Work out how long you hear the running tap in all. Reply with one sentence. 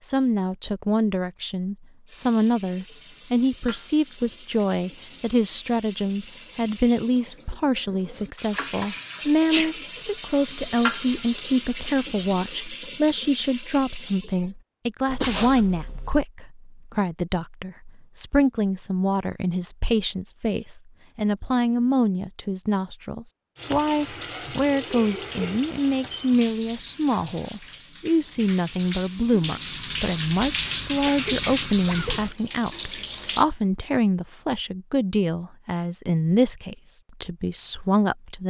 You can hear the running tap for 22 seconds altogether.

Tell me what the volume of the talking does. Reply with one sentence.
The volume of the talking stays about the same.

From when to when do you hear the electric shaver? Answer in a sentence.
The electric shaver can't be heard in this clip.